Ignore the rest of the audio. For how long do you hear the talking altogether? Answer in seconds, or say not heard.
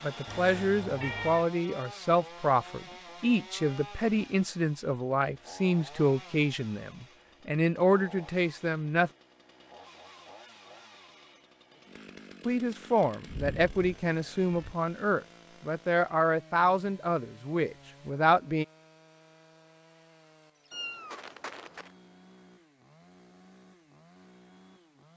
15 s.